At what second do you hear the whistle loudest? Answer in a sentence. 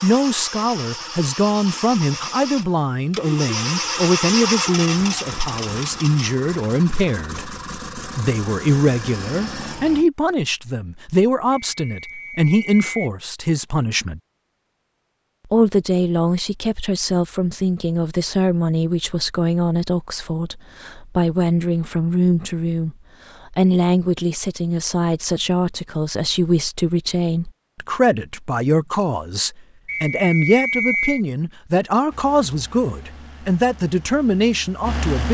The volume of the whistle peaks at 31 seconds.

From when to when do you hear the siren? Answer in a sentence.
You can't hear the siren here.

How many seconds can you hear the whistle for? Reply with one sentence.
You can hear the whistle for 3 seconds altogether.